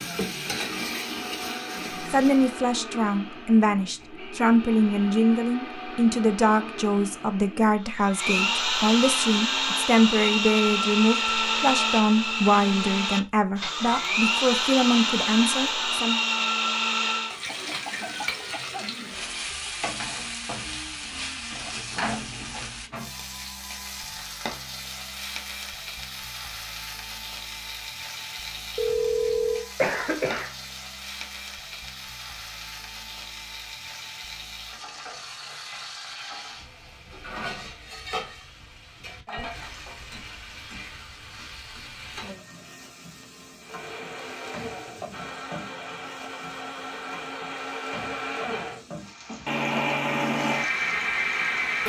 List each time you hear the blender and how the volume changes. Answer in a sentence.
You can hear the blender from 0.1 to 17.4 s, getting louder; and from 43.5 to 51.8 s, getting louder.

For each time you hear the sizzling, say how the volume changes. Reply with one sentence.
The sizzling can be heard briefly from 0.0 to 2.5 s; and from 17.2 to 51.8 s, getting quieter.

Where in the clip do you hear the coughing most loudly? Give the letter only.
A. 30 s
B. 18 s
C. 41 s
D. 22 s
A.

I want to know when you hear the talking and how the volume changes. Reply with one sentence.
You can hear the talking from 2.0 to 16.2 s, at a steady volume.